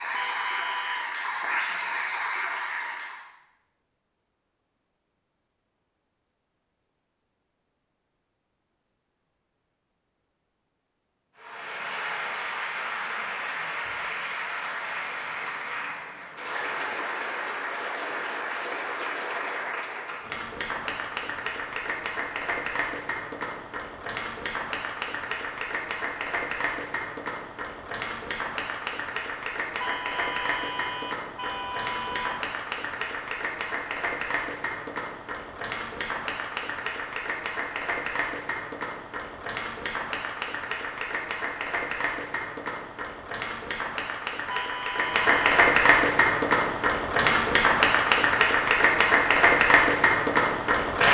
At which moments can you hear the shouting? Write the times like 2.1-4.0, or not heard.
not heard.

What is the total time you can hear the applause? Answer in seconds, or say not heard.
43 s.